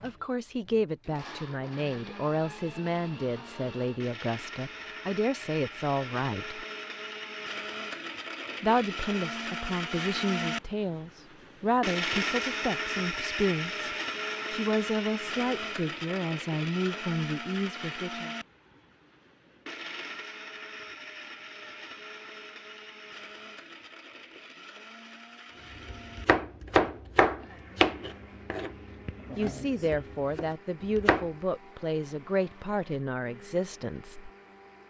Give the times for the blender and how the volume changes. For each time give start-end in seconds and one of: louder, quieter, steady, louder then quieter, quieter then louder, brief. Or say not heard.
0.0-34.8 louder then quieter.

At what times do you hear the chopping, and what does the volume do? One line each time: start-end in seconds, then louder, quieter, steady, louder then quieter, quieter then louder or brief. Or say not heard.
25.9-31.2 quieter.